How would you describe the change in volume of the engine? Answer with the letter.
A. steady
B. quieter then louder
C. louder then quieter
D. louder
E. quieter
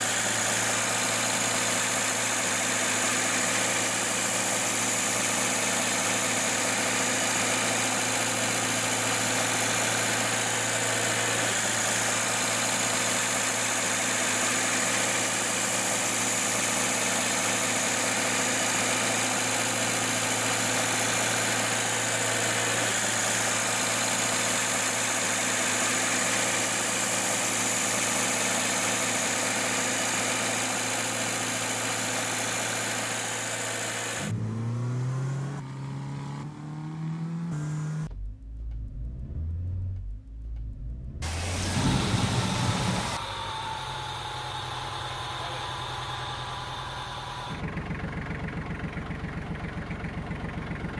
E.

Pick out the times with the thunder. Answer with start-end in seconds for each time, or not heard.
41.2-43.2.